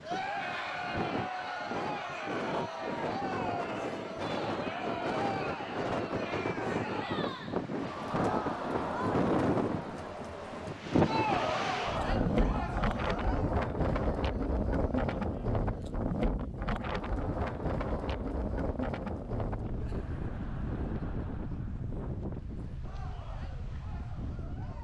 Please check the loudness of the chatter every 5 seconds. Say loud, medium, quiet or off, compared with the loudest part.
loud, loud, loud, quiet, quiet.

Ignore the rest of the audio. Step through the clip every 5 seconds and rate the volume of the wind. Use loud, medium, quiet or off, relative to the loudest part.
medium, loud, loud, loud, medium.